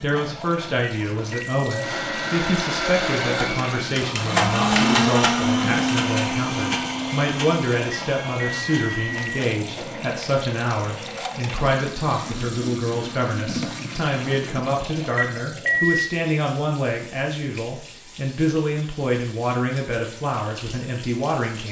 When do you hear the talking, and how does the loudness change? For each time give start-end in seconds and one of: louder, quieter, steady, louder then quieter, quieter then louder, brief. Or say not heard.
0.0-21.6 steady.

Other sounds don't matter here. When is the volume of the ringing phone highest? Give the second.
16 s.